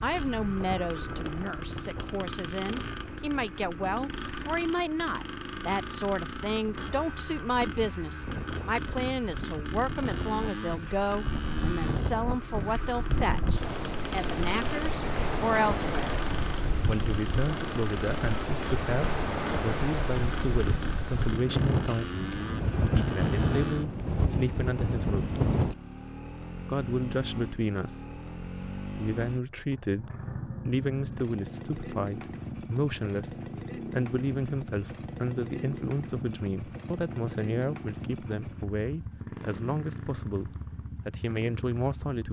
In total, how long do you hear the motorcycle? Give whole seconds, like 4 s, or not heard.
42 s.